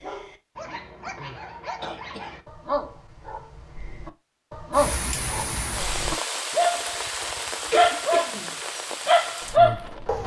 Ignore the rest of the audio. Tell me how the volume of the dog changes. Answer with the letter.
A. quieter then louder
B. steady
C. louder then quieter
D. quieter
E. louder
E.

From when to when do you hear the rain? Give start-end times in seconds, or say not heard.
4.7-10.2.